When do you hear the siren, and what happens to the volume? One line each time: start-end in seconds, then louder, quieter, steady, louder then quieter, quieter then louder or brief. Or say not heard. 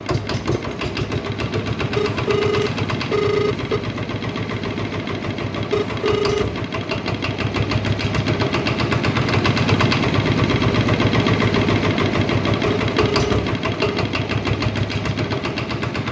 not heard.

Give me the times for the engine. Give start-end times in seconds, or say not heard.
0.0-16.0.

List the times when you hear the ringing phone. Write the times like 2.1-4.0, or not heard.
1.9-3.8, 5.7-6.5, 12.7-14.1.